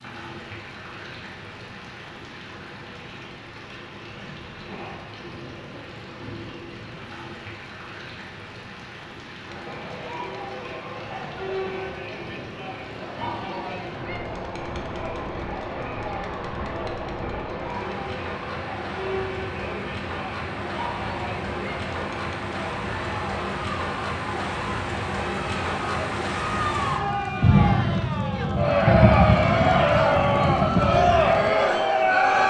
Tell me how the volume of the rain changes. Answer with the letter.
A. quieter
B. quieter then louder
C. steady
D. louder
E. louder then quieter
D.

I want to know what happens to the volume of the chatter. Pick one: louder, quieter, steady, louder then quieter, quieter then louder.
louder.